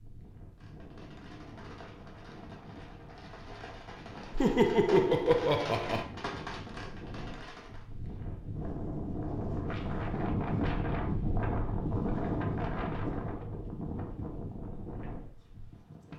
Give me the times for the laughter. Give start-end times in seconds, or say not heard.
4.3-6.0.